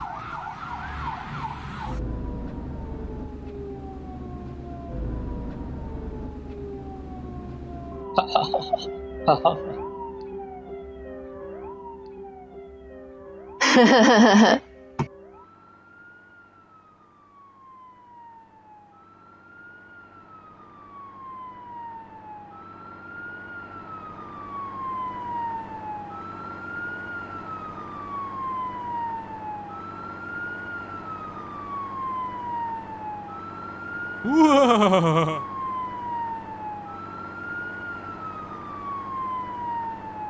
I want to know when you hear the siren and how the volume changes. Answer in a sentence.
You can hear the siren from 0.0 to 40.2 s, getting quieter then louder.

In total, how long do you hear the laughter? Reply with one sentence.
You can hear the laughter for 4 seconds altogether.